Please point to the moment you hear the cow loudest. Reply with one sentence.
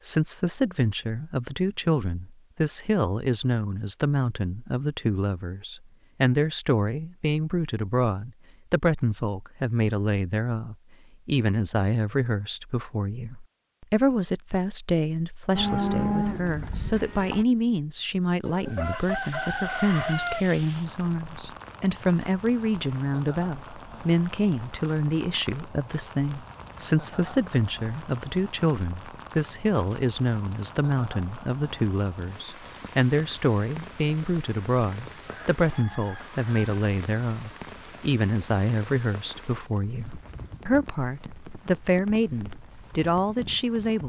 The loudest moment of the cow is at 16 seconds.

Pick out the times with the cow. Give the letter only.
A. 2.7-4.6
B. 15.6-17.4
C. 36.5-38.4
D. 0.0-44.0
B.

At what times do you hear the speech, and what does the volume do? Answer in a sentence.
The speech can be heard from 0.0 to 44.0 s, at a steady volume.